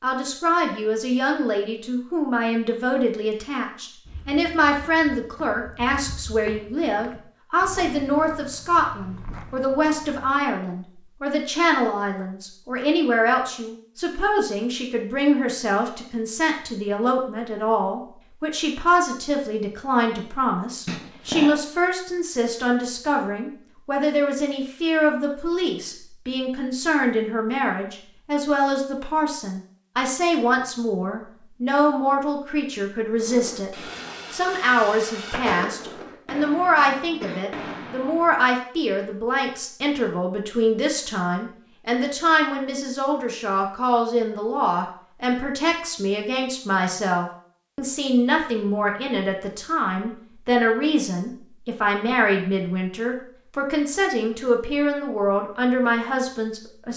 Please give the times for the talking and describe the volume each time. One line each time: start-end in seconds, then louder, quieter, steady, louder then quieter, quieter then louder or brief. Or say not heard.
0.0-56.9 steady.